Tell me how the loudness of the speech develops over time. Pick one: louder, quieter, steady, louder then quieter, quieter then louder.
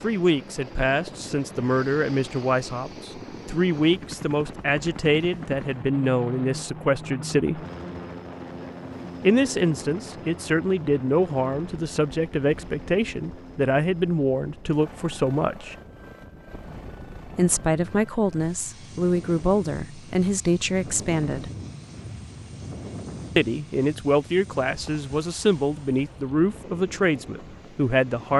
steady.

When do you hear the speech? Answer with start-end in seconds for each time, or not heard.
0.0-7.6, 9.2-15.8, 17.3-21.5, 23.4-28.3.